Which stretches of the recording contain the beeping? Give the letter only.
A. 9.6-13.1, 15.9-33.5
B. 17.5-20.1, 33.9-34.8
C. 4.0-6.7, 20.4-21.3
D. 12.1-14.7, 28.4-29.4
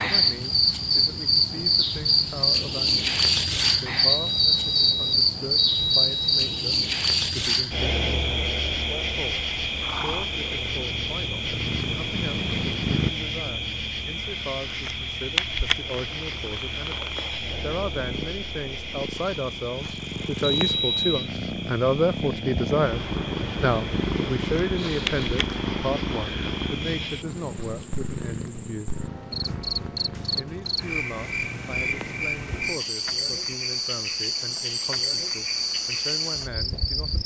C.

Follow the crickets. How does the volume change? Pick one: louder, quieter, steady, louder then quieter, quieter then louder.
quieter then louder.